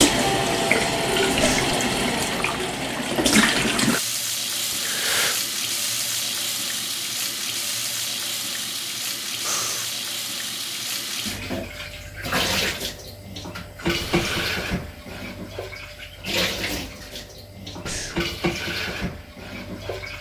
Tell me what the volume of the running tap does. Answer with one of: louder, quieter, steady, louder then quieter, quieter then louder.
quieter.